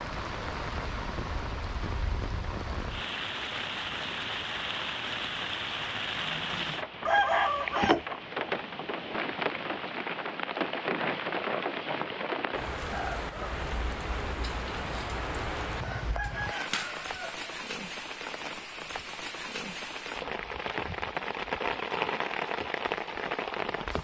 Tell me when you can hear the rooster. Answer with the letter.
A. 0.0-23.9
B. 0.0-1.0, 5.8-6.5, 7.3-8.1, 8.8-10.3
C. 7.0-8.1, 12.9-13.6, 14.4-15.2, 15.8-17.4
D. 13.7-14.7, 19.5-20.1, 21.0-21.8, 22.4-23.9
C.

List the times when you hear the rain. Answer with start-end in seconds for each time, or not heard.
0.0-23.9.